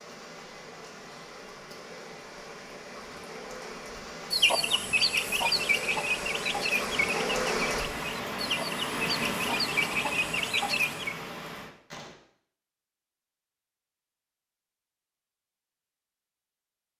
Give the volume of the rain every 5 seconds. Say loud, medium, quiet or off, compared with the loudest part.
medium, loud, medium, off.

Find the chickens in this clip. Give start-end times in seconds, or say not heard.
4.3-11.2.